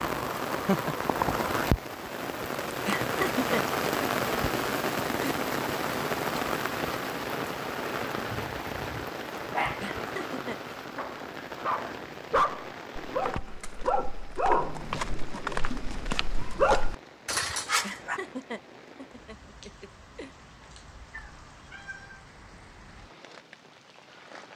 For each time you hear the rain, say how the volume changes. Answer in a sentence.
The rain can be heard from 0.0 to 24.5 s, getting quieter.